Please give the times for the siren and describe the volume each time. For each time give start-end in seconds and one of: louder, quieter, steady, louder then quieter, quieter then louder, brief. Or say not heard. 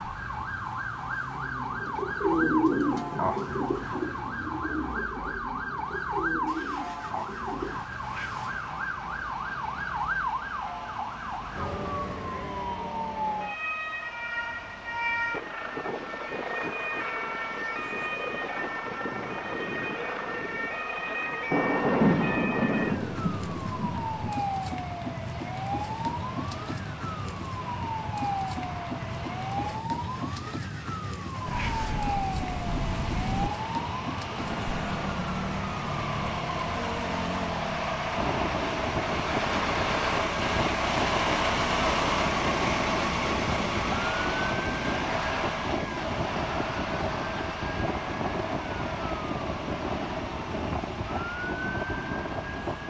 0.0-52.8 steady.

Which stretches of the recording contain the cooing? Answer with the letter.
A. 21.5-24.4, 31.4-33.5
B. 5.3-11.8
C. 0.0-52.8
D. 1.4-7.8
D.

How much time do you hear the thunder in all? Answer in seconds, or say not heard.
5 s.